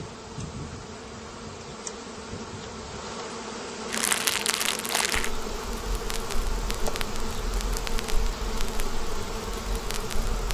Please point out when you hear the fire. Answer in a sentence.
You can hear the fire from 3.9 to 10.4 s.